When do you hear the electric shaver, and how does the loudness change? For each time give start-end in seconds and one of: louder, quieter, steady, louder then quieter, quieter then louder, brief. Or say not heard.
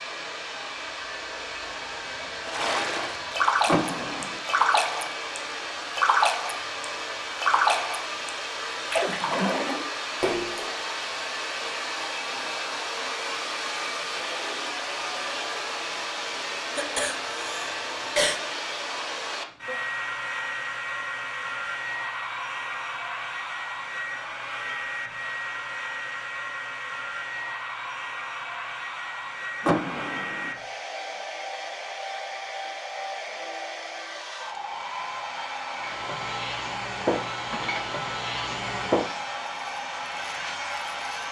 35.8-41.2 quieter.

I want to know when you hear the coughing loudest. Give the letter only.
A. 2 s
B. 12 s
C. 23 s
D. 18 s
D.